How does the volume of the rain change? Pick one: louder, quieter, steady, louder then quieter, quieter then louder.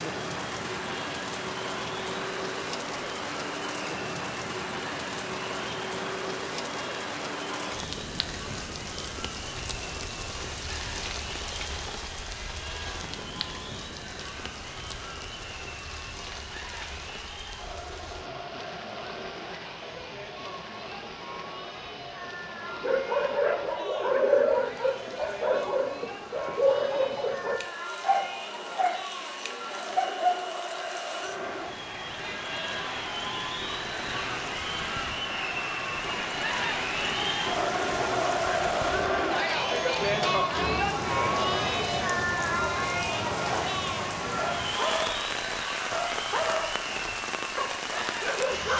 quieter then louder.